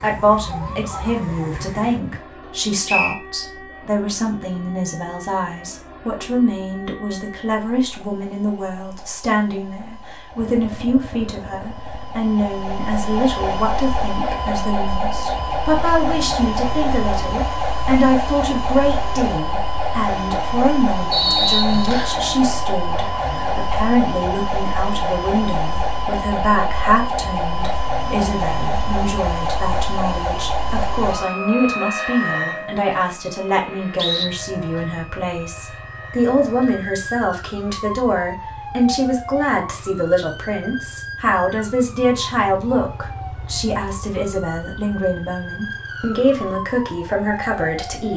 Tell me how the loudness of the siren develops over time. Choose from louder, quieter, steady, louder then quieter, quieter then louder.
louder then quieter.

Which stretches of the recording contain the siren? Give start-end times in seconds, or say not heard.
0.0-48.1.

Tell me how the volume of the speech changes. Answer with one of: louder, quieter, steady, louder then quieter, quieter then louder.
steady.